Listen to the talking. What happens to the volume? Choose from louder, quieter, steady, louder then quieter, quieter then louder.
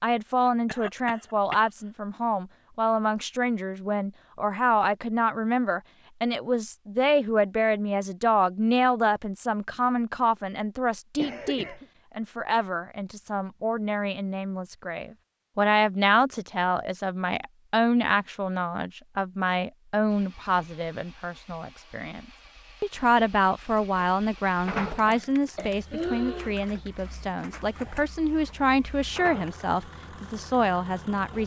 steady.